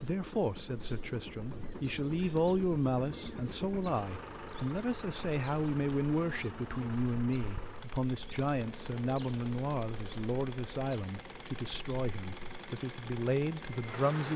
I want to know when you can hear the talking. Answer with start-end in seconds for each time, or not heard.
0.0-14.3.